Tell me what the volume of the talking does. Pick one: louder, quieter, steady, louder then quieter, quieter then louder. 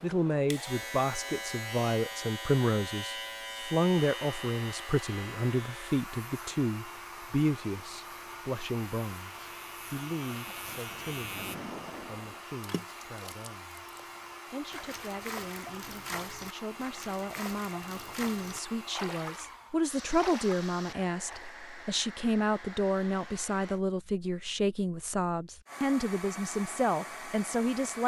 quieter then louder.